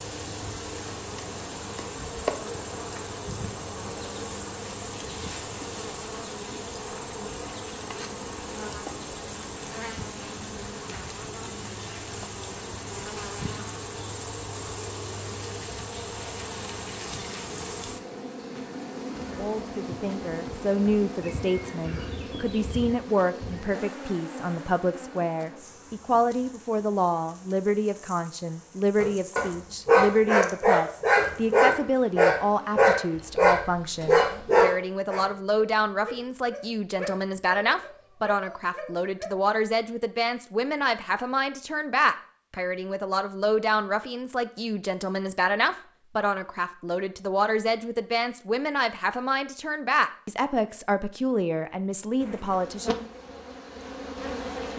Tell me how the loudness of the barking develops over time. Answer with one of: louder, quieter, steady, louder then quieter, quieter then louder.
quieter.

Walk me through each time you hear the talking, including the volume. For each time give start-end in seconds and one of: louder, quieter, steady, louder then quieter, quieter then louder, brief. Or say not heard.
19.4-53.0 steady.